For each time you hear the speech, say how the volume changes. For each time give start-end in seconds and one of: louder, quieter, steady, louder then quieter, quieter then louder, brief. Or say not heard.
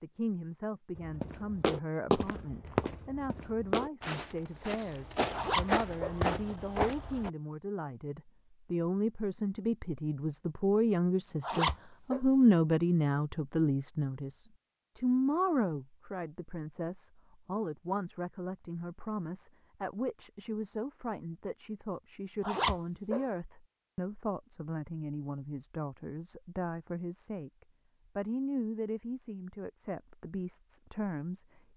0.0-31.6 louder then quieter.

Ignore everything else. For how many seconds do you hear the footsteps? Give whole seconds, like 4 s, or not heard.
6 s.